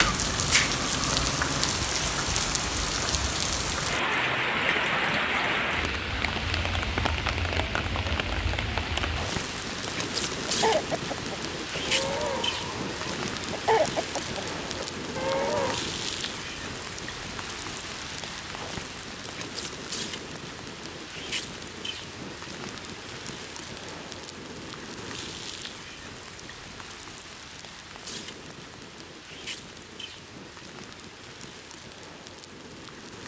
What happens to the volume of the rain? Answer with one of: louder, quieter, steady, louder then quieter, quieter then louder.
quieter.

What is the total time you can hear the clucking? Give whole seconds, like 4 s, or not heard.
5 s.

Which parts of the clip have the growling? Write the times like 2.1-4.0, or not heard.
0.2-1.8.